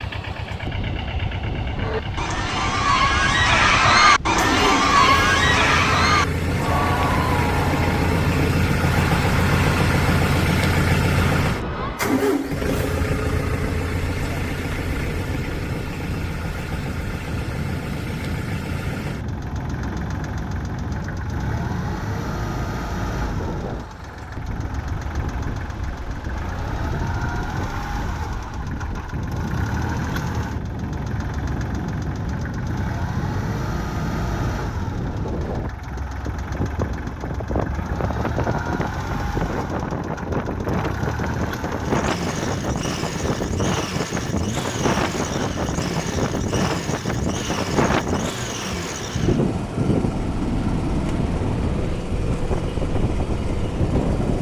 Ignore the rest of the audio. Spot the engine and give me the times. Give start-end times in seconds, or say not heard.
0.0-54.3.